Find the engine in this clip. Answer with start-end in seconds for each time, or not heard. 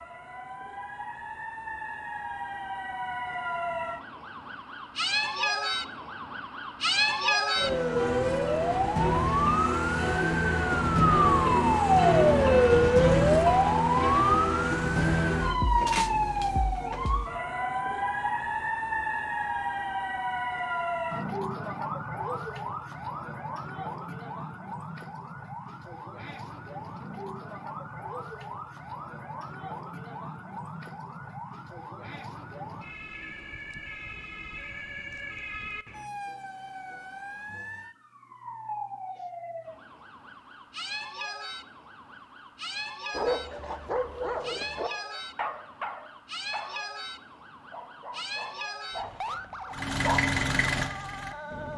49.7-51.7.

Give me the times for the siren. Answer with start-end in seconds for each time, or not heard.
0.0-51.7.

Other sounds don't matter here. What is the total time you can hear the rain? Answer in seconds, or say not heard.
not heard.